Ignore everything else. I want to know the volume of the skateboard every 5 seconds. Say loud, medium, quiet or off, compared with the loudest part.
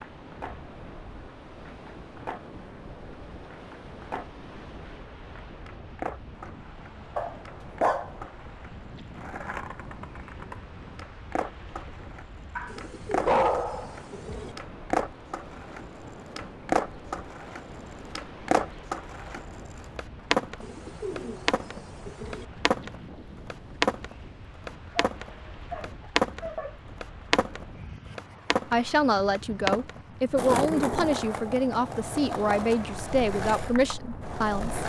quiet, quiet, medium, medium, loud, loud, medium.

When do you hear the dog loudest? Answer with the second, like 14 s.
13 s.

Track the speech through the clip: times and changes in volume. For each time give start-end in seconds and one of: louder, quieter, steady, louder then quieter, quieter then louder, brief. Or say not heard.
28.7-34.8 steady.